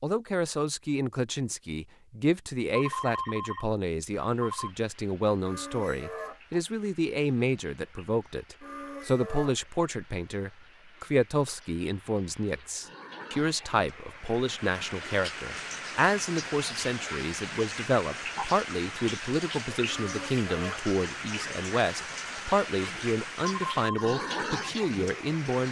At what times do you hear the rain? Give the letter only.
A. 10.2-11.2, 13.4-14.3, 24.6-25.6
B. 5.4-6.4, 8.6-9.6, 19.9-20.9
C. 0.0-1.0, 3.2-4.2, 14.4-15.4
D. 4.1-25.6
D.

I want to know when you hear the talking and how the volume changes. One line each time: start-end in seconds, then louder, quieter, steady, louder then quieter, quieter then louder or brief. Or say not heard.
0.0-25.6 steady.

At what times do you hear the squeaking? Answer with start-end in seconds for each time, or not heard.
5.4-6.4, 8.6-9.6, 19.9-20.9.